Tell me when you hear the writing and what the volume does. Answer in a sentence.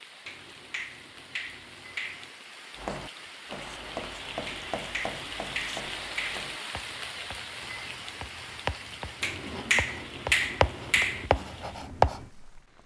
You can hear the writing from 2.8 to 12.3 s, getting quieter then louder.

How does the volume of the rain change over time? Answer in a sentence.
The volume of the rain goes up, then down.